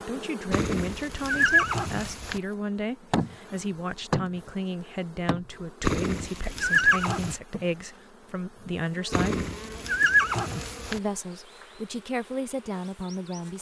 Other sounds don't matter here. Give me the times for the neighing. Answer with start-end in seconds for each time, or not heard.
0.5-2.4, 5.8-7.3, 9.1-11.0.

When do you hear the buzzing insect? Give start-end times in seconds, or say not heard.
0.0-13.5.